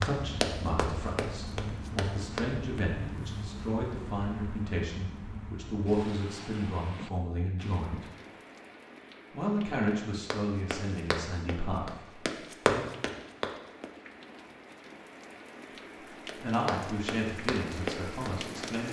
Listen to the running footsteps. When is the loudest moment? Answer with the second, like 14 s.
13 s.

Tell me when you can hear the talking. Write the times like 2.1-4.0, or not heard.
0.0-8.1, 9.3-12.8, 16.4-18.8.